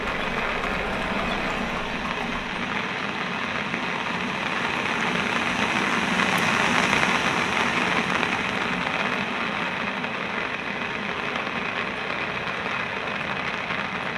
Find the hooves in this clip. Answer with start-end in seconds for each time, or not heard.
0.0-2.5.